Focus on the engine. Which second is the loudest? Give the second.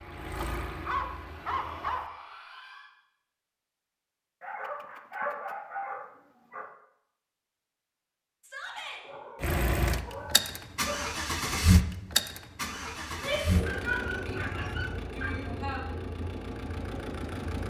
12 s.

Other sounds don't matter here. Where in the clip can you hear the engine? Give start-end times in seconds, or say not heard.
0.0-1.9, 9.4-17.6.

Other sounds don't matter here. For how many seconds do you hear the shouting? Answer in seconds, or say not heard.
5 s.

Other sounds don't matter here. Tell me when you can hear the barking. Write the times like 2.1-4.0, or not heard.
0.4-2.1, 4.4-6.7, 9.0-11.1, 13.7-15.6.